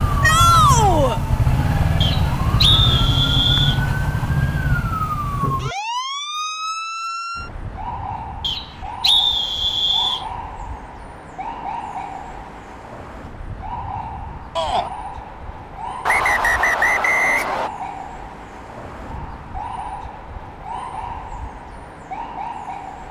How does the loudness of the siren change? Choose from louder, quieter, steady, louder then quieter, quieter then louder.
quieter.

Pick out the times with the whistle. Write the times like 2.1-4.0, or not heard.
2.0-3.8, 8.4-10.2, 16.1-17.7.